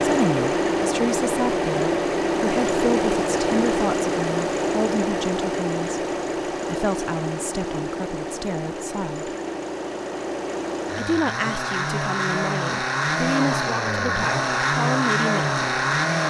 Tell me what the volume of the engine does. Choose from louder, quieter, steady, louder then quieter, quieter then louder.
quieter then louder.